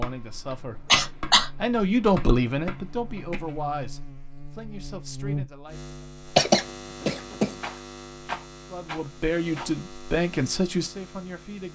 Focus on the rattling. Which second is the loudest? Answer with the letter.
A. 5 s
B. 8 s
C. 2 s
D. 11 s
B.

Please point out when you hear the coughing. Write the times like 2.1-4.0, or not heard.
0.8-1.5, 6.3-7.5.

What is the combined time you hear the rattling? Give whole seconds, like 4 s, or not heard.
2 s.